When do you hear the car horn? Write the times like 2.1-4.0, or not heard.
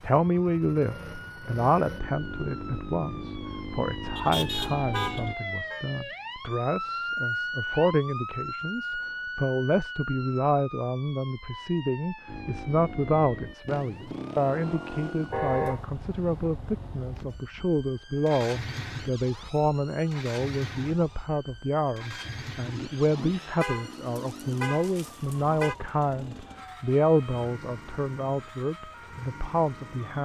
4.2-5.8, 15.3-15.8, 23.6-25.8.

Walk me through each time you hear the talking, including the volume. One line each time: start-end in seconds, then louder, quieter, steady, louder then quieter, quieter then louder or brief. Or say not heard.
0.0-30.1 steady.